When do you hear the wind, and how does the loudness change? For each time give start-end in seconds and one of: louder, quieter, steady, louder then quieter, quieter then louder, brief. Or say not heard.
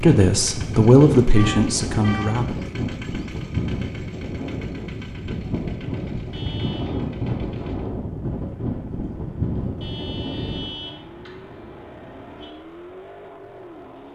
0.0-10.7 steady.